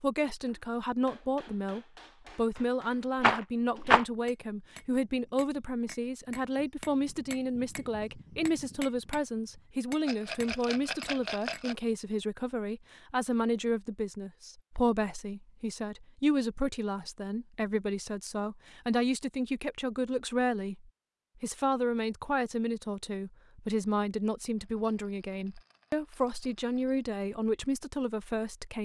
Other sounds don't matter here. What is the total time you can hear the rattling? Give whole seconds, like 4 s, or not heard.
5 s.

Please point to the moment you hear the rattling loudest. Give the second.
4 s.